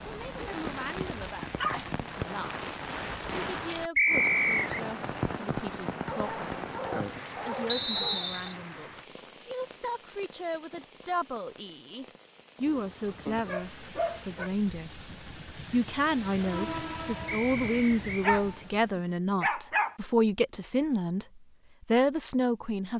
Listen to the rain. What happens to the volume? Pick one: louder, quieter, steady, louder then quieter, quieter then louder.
quieter then louder.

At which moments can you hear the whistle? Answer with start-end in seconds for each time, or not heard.
4.0-4.8, 7.7-8.6, 17.2-18.3.